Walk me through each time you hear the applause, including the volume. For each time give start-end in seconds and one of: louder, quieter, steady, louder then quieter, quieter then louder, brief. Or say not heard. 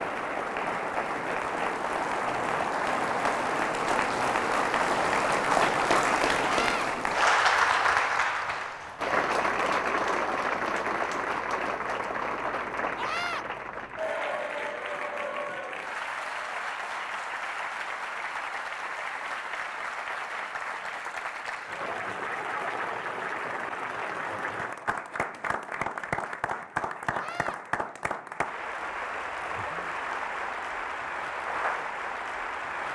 0.0-32.9 quieter.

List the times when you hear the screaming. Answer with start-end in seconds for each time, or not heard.
6.4-6.9, 12.9-13.4, 27.1-27.6.